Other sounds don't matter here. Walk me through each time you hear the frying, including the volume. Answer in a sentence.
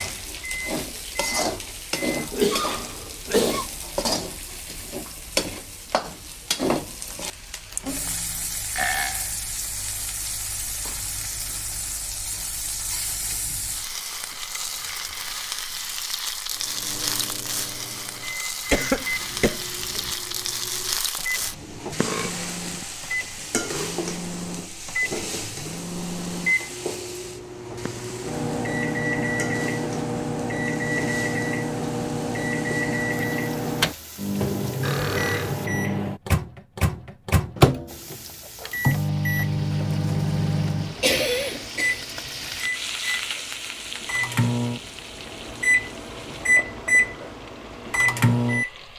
You can hear the frying from 0.0 to 35.7 s, getting quieter; and from 37.9 to 48.9 s, getting louder then quieter.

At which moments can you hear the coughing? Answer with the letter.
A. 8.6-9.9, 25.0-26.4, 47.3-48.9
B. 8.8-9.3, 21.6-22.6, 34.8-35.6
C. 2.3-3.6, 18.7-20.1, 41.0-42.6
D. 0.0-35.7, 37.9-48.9
C.